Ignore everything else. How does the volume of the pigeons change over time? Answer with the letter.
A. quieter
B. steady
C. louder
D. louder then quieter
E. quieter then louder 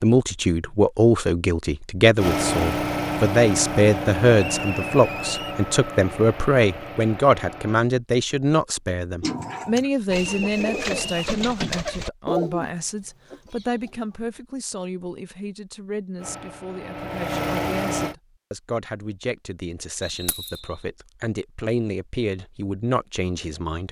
D.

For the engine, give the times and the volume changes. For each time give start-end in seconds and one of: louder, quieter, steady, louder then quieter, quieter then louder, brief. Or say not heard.
2.1-7.8 quieter
16.1-18.1 brief.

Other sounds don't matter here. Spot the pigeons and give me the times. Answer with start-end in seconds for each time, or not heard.
9.2-14.2.